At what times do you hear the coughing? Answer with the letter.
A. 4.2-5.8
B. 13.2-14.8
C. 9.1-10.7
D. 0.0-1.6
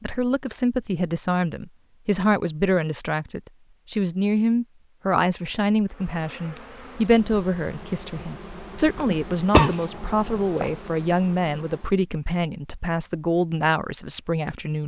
C.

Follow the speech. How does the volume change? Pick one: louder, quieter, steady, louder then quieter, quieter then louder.
steady.